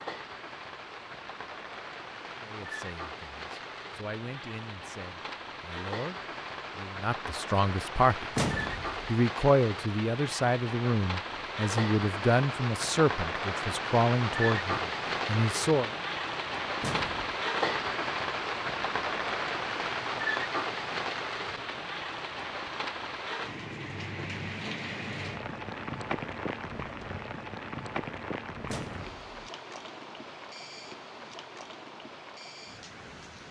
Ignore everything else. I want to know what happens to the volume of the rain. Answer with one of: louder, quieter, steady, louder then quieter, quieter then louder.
louder then quieter.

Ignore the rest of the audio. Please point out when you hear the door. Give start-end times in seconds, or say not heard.
8.3-9.1, 16.8-17.4, 28.6-29.4.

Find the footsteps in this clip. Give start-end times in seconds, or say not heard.
not heard.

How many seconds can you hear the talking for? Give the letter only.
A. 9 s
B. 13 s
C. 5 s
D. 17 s
B.